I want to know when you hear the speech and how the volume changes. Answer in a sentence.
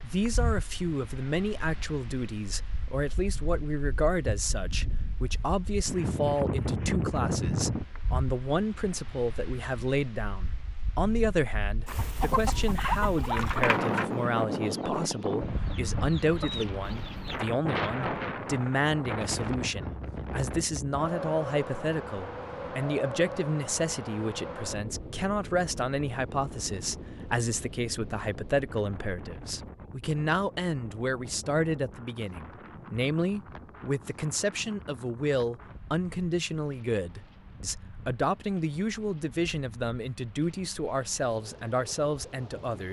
The speech can be heard from 0.0 to 42.8 s, at a steady volume.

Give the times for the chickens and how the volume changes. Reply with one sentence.
The chickens can be heard from 11.8 to 17.4 s, getting quieter then louder.